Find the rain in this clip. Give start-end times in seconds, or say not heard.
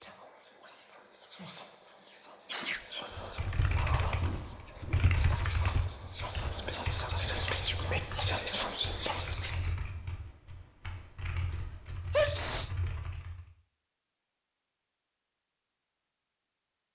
not heard.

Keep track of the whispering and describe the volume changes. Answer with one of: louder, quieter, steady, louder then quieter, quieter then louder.
louder.